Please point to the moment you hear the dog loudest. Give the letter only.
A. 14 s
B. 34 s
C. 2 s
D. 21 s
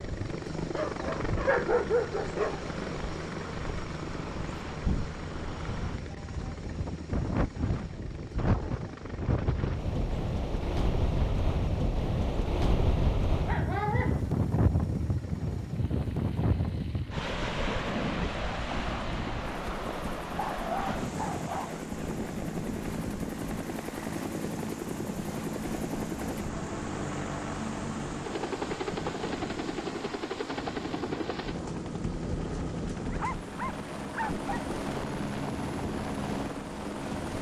C.